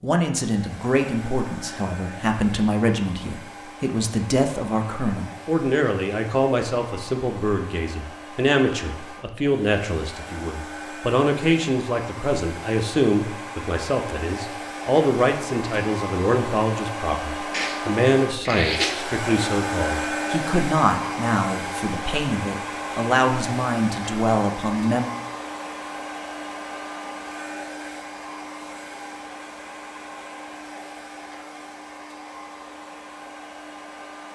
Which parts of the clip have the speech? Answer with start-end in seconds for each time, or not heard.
0.0-25.1.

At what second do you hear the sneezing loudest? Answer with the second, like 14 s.
19 s.